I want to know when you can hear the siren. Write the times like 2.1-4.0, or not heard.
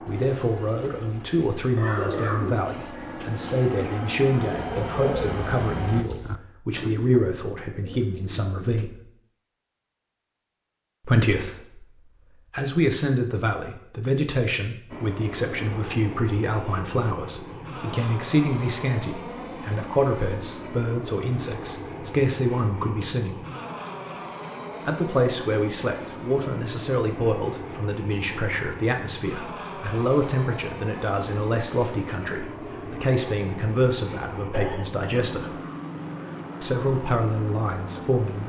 not heard.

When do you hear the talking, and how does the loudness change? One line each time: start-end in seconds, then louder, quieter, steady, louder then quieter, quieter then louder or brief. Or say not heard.
0.1-9.0 steady
11.1-23.4 steady
24.9-35.5 steady
36.6-38.4 brief.